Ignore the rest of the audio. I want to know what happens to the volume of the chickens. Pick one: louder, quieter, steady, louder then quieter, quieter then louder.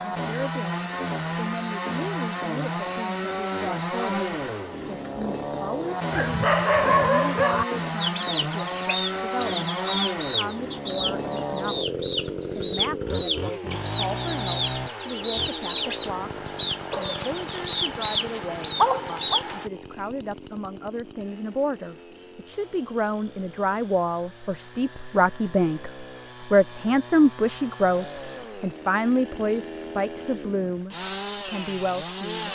steady.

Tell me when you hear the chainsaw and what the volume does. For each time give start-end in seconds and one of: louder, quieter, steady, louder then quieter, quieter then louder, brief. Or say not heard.
0.0-32.5 quieter then louder.